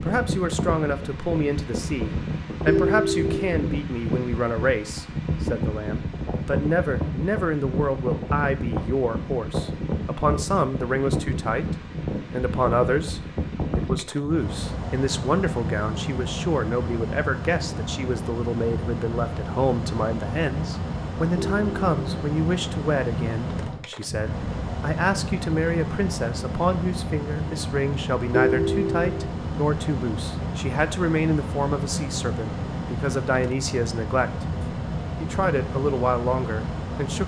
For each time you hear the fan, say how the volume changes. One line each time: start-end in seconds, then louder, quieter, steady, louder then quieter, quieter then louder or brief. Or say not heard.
0.0-37.2 steady.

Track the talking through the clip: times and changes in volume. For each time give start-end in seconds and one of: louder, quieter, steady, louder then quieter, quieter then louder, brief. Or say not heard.
0.0-37.2 steady.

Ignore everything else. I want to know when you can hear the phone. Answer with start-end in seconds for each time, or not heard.
2.6-3.6, 21.4-22.1, 28.3-29.3.